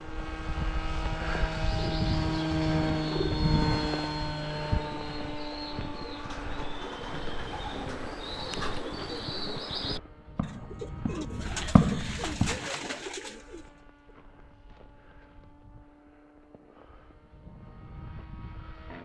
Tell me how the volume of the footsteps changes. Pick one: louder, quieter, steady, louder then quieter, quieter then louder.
louder.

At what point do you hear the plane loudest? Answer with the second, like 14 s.
3 s.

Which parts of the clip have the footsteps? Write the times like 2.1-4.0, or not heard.
4.8-12.8.